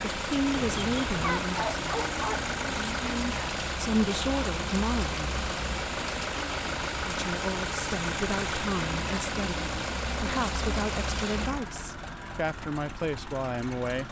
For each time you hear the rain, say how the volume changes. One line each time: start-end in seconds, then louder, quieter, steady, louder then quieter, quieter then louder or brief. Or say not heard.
0.0-11.5 steady.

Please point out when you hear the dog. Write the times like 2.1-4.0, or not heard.
0.5-2.5.